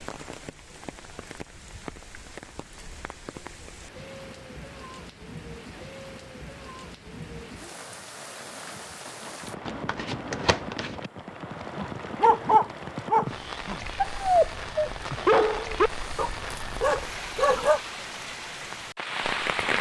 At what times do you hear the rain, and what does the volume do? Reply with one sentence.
You can hear the rain from 0.0 to 19.7 s, getting louder.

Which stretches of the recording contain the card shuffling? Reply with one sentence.
The card shuffling can be heard from 9.7 to 11.1 s.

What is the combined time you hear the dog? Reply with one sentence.
You can hear the dog for 6 seconds altogether.